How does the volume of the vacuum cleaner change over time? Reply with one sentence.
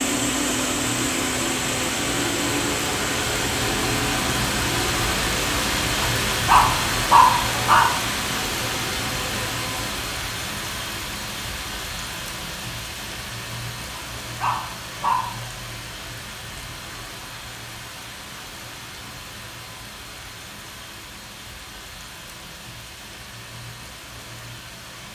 The loudness of the vacuum cleaner goes down.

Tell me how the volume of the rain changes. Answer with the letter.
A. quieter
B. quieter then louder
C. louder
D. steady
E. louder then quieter
A.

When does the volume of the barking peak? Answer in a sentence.
The volume of the barking peaks at 7 seconds.